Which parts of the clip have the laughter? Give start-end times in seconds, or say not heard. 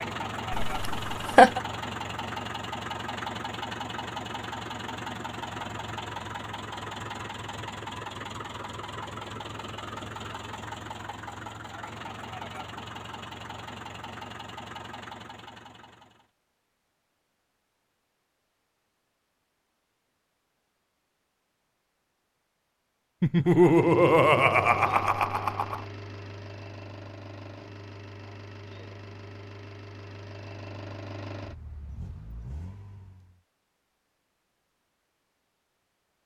0.6-1.6, 23.2-25.8.